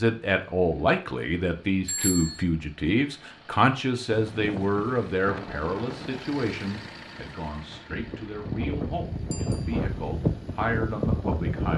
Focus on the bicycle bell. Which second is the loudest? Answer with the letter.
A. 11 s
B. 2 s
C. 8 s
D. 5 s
B.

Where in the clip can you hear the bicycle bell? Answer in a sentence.
The bicycle bell can be heard from 1.9 to 2.5 s and from 9.3 to 9.8 s.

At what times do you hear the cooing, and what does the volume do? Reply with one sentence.
The cooing can't be heard in this clip.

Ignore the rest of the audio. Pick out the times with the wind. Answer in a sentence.
The wind can be heard from 4.1 to 11.7 s.